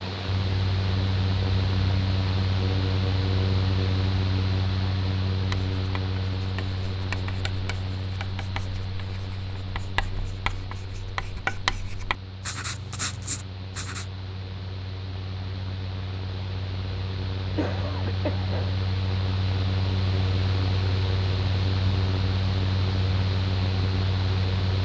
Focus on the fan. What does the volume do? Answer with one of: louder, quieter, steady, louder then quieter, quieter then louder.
quieter then louder.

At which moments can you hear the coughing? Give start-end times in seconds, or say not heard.
17.6-18.8.